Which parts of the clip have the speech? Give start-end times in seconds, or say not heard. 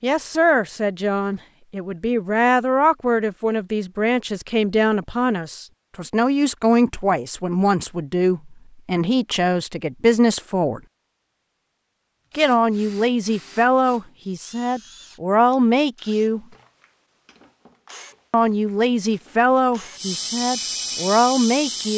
0.0-10.8, 12.3-16.4, 18.3-21.9.